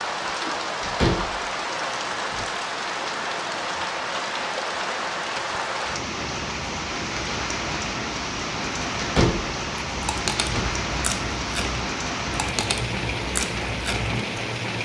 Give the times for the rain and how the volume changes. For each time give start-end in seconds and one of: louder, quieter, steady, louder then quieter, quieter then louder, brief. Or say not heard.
0.0-14.8 steady.